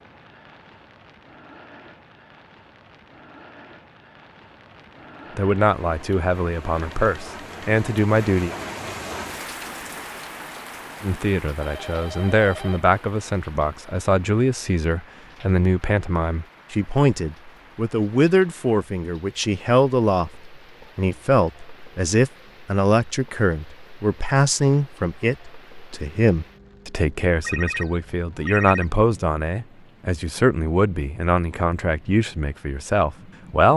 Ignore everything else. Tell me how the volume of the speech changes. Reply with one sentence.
The loudness of the speech stays about the same.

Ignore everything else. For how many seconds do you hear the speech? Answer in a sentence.
The speech can be heard for 26 seconds in total.